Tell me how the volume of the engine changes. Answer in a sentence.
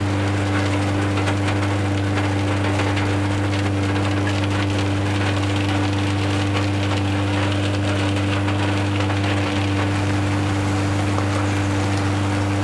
The volume of the engine stays about the same.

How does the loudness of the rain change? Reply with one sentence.
The loudness of the rain stays about the same.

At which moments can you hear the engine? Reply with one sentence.
You can hear the engine from 0.0 to 12.5 s.